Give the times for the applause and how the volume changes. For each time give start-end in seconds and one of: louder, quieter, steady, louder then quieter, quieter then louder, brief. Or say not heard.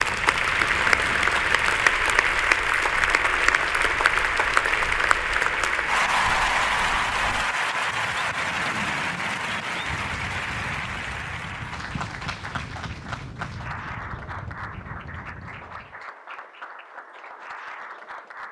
0.0-18.4 quieter.